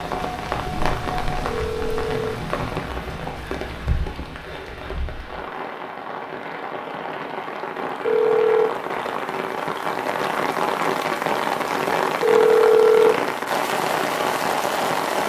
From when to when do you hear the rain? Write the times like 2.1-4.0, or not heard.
0.0-15.2.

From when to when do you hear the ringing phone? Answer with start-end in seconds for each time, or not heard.
1.4-2.4, 8.1-8.7, 12.2-13.2.